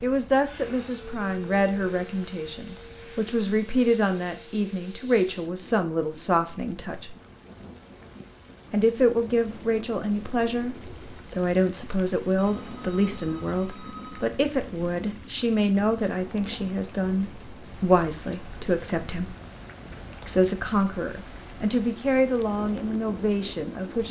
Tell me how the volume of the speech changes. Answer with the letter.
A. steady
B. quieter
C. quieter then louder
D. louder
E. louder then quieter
A.